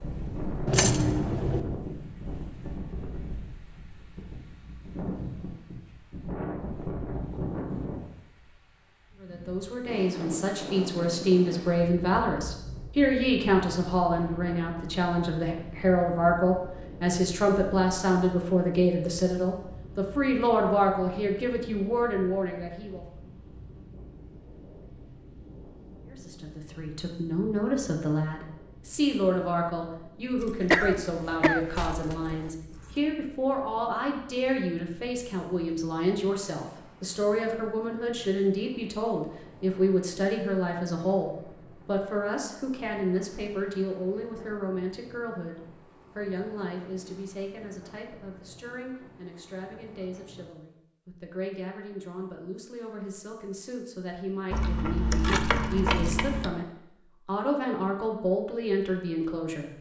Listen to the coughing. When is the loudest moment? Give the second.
31 s.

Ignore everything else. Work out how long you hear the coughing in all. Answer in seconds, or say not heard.
2 s.